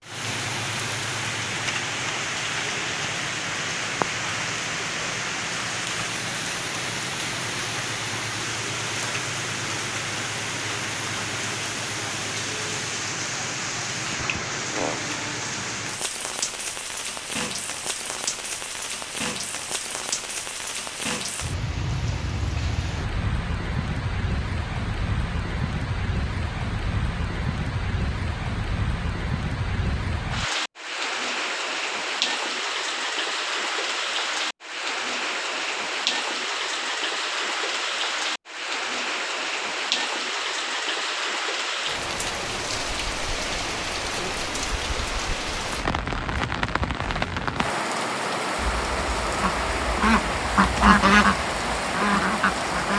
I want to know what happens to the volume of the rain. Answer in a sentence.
The loudness of the rain stays about the same.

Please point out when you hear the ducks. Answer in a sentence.
You can hear the ducks from 48.5 to 52.9 s.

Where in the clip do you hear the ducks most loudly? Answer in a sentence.
The volume of the ducks peaks at 51 seconds.